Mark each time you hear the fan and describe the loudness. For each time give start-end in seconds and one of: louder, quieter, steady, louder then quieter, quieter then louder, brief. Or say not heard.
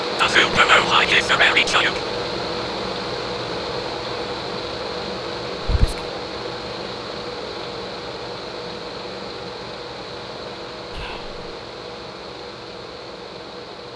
0.0-13.9 quieter.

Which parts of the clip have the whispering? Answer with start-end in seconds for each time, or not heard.
0.1-2.0, 5.6-6.0, 10.9-11.3.